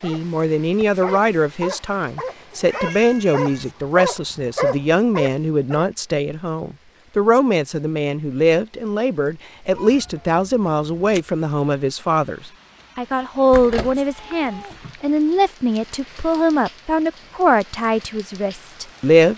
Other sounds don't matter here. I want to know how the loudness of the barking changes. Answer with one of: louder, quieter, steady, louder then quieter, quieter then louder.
louder.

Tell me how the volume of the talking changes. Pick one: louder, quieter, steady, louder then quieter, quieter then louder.
steady.